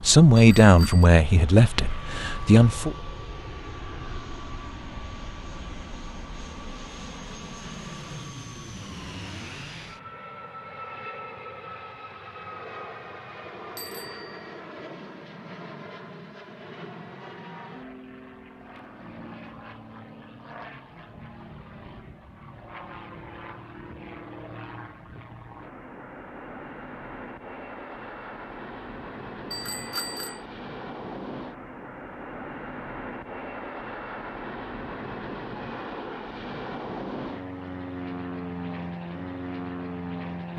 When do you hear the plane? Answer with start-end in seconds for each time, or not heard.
0.0-40.5.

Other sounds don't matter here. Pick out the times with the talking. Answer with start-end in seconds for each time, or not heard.
0.0-3.0.